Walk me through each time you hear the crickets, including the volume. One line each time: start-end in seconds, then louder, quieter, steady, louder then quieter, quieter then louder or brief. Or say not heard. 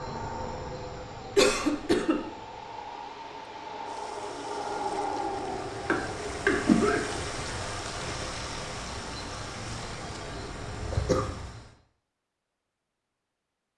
0.0-11.7 louder then quieter.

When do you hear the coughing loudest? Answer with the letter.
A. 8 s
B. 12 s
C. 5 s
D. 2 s
D.